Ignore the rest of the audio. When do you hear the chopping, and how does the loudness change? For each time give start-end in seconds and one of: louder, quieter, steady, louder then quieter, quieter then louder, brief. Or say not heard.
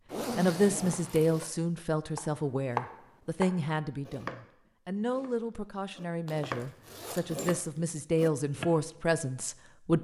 2.1-8.8 quieter then louder.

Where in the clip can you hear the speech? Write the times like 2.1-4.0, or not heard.
0.3-10.0.